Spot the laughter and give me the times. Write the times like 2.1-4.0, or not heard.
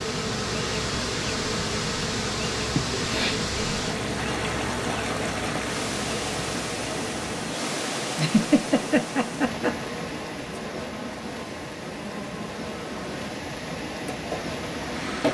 2.7-3.4, 8.2-9.8.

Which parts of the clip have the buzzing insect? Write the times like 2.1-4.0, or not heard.
0.0-15.2.